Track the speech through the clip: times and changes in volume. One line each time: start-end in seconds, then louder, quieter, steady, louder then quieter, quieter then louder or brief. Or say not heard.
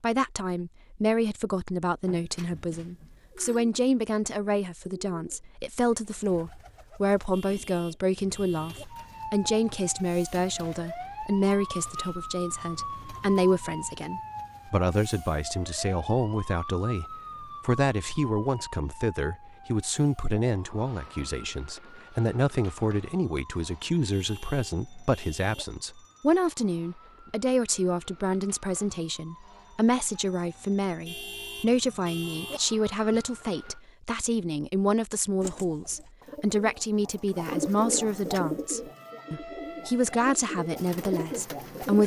0.0-42.0 steady.